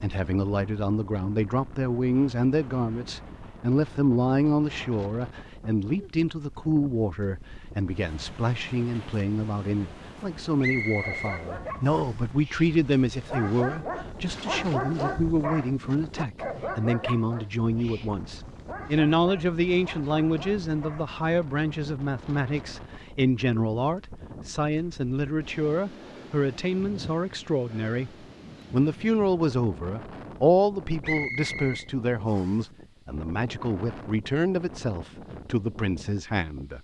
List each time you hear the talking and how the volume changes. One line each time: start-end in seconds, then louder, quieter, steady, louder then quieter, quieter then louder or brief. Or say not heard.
0.0-28.1 steady
28.7-36.7 quieter.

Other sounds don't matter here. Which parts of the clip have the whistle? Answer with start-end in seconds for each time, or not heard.
10.6-12.2, 31.0-32.6.